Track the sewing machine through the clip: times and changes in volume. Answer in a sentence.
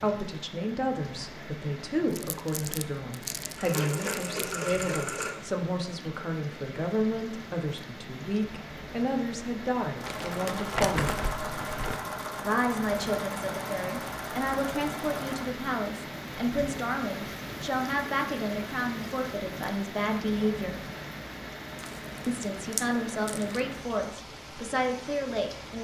The sewing machine can be heard briefly from 3.5 to 5.3 s; and from 9.9 to 15.5 s, at a steady volume.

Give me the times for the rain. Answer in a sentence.
You can hear the rain from 0.0 to 25.7 s.